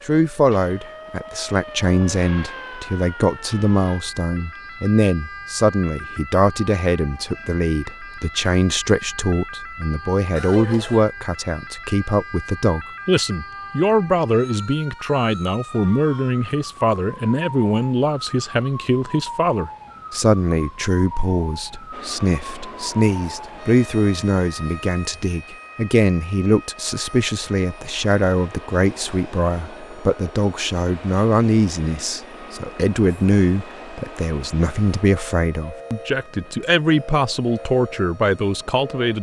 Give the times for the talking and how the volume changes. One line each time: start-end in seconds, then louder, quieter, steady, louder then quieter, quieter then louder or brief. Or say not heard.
0.1-39.1 steady.